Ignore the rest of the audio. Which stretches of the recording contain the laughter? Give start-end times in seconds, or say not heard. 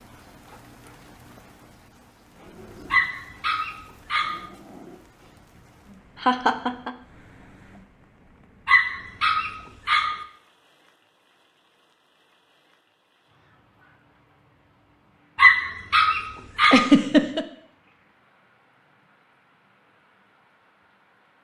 6.2-6.9, 16.6-17.4.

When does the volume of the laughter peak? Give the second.
17 s.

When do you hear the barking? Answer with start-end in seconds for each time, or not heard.
2.9-4.5, 8.7-10.2, 15.3-16.9.